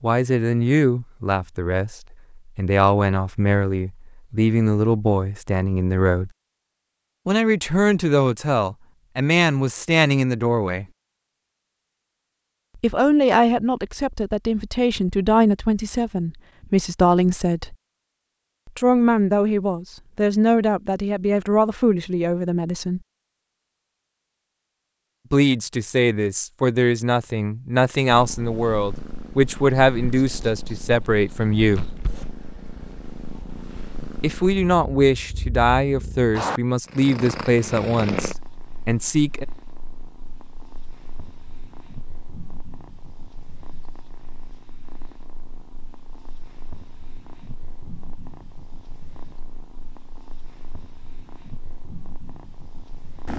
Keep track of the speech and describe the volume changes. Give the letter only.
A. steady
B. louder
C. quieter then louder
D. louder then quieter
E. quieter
A.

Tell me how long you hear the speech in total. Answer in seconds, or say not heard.
31 s.